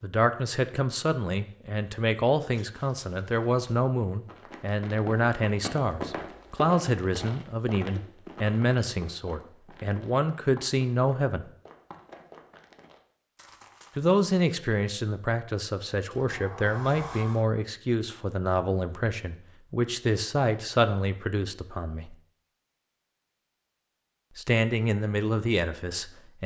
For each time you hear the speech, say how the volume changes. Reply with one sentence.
The speech can be heard from 0.0 to 11.4 s, at a steady volume; from 13.9 to 22.1 s, at a steady volume; and briefly from 24.4 to 26.4 s.